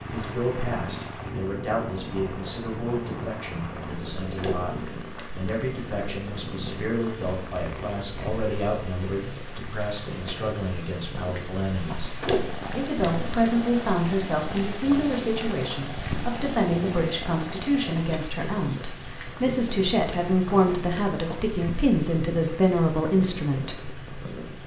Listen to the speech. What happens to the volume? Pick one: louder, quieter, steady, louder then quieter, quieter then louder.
louder.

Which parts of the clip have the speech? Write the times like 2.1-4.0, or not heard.
0.0-23.8.